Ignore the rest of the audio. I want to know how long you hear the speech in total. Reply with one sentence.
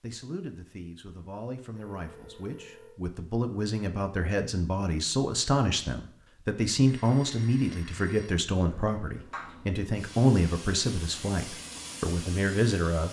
You can hear the speech for 13 seconds altogether.